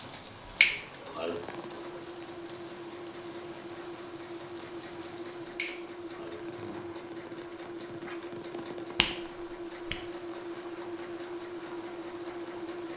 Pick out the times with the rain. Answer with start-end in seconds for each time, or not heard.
0.0-12.9.